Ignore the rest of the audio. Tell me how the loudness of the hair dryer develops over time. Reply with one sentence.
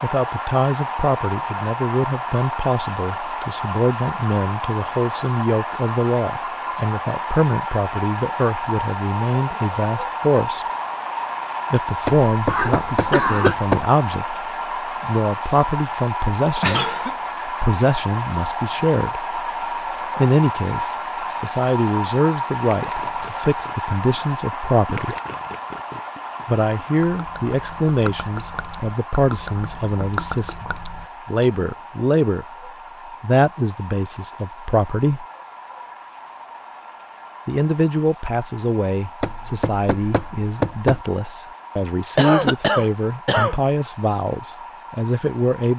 The volume of the hair dryer goes down.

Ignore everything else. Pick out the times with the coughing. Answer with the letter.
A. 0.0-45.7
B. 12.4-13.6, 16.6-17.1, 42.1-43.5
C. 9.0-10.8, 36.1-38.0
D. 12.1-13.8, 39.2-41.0
B.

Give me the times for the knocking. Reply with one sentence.
The knocking can be heard from 12.1 to 13.8 s and from 39.2 to 41.0 s.